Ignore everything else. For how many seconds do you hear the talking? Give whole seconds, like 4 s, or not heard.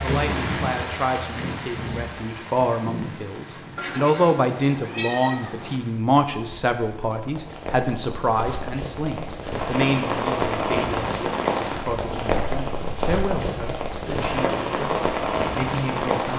16 s.